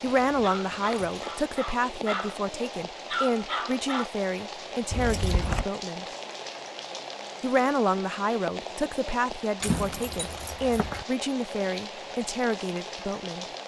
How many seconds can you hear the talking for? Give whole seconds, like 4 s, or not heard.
12 s.